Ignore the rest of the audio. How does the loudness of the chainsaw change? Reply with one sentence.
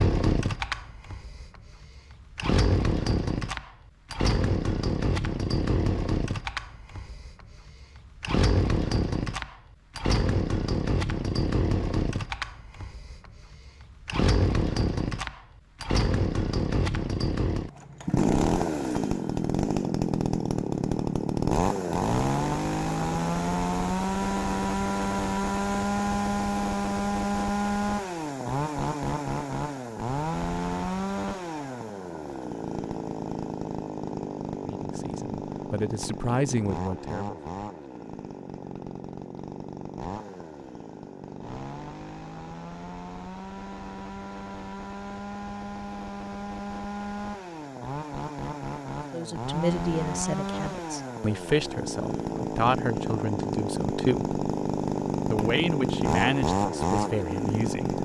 The volume of the chainsaw goes down, then up.